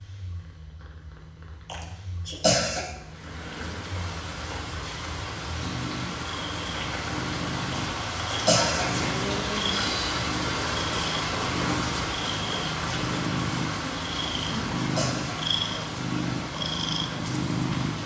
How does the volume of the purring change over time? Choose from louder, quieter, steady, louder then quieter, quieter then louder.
louder.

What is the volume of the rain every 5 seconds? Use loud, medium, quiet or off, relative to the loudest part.
medium, loud, loud, medium.